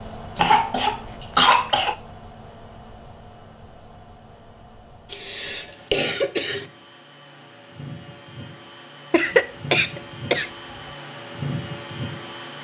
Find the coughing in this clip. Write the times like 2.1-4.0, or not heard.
0.3-1.9, 5.1-6.7, 9.1-10.5.